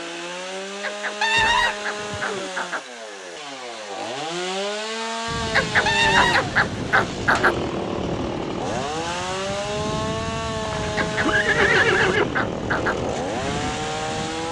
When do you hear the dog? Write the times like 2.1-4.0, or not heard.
0.8-2.8, 5.5-7.5, 10.9-12.9.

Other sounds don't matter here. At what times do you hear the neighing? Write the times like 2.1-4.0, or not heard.
1.2-2.5, 5.8-7.2, 10.6-12.3.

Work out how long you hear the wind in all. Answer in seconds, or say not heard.
9 s.